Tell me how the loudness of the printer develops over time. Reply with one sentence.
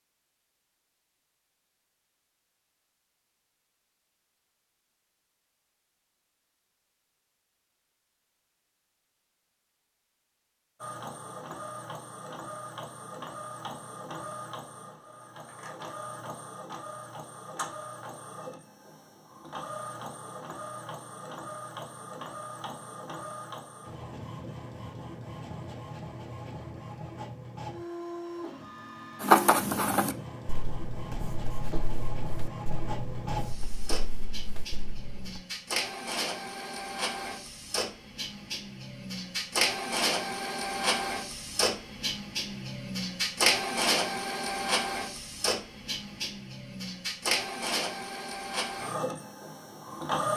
The loudness of the printer goes up.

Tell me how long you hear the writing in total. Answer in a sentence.
You can hear the writing for 6 seconds altogether.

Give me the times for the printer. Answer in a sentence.
You can hear the printer from 10.8 to 50.3 s.